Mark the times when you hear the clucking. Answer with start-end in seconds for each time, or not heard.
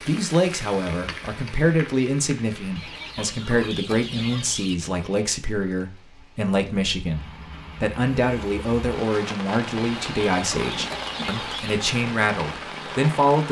2.8-4.8, 9.8-11.8.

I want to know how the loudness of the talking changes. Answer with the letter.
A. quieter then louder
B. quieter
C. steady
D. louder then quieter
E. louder
C.